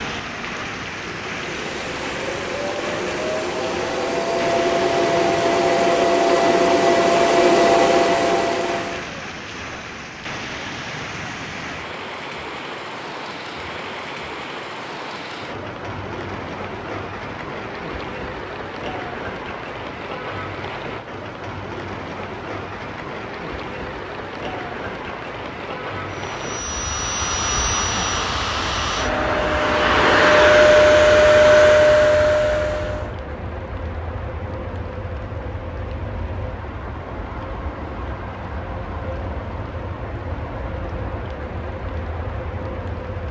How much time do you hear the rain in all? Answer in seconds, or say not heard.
43 s.